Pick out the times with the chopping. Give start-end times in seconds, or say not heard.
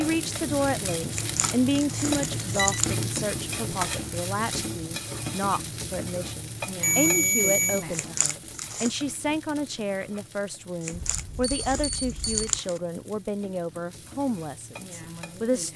not heard.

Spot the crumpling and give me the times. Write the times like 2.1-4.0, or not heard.
1.1-3.0, 7.9-8.9, 10.8-12.8.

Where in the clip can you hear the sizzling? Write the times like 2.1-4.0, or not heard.
0.0-15.7.